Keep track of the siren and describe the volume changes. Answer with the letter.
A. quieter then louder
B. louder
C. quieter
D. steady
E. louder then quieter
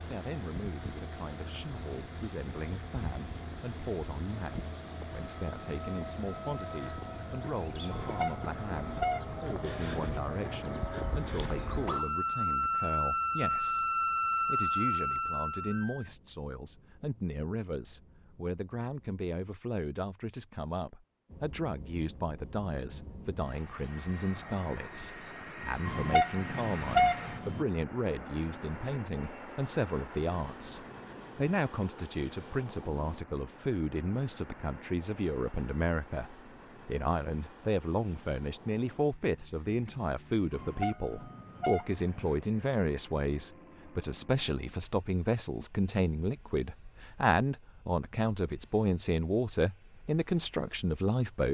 B.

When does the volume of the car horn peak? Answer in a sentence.
The loudest moment of the car horn is at 27 seconds.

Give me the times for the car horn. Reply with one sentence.
You can hear the car horn from 7.9 to 9.4 s, from 25.9 to 27.6 s and from 40.5 to 42.3 s.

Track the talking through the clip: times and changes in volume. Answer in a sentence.
The talking can be heard from 0.1 to 51.4 s, getting louder.